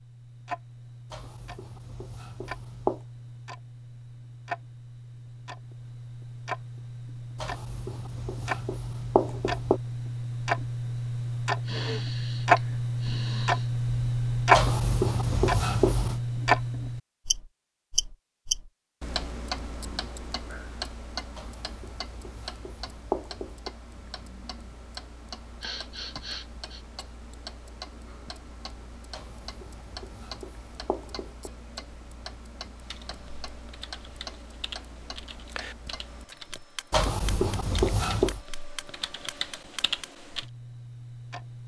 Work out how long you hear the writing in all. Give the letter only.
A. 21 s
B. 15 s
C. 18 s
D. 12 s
D.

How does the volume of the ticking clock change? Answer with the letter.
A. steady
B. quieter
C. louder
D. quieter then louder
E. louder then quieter
E.